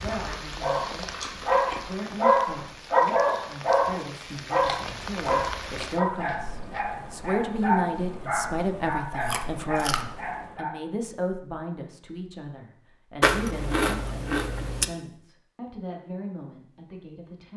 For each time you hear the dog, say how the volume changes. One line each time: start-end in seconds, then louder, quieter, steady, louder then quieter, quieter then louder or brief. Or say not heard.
0.6-10.8 quieter.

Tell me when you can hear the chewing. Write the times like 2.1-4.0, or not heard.
0.2-1.9, 4.6-7.0, 9.2-10.1, 13.2-14.8.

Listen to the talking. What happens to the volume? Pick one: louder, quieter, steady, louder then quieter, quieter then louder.
louder then quieter.